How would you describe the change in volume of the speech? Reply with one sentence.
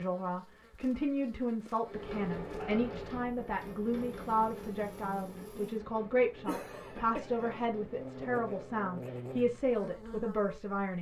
The loudness of the speech stays about the same.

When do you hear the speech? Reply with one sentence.
You can hear the speech from 0.0 to 10.9 s.